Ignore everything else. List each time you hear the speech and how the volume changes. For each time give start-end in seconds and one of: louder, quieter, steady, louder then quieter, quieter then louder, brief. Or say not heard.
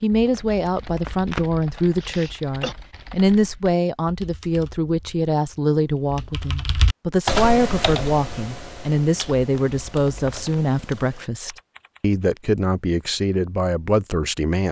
0.0-14.6 steady.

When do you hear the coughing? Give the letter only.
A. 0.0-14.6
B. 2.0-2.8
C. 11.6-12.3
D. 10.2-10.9
B.